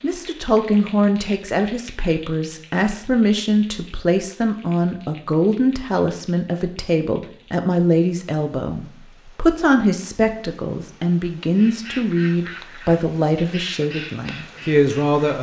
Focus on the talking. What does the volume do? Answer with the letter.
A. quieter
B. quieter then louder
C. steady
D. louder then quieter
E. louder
C.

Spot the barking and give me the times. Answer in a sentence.
The barking can't be heard in this clip.